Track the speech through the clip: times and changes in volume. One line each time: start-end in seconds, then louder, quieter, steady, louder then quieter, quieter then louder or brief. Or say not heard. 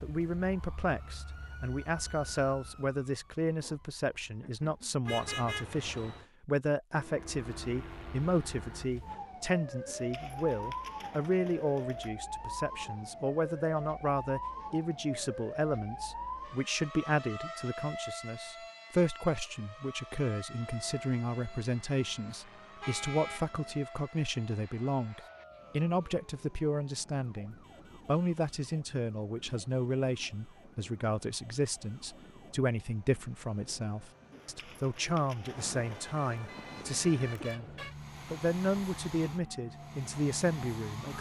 0.0-41.1 steady.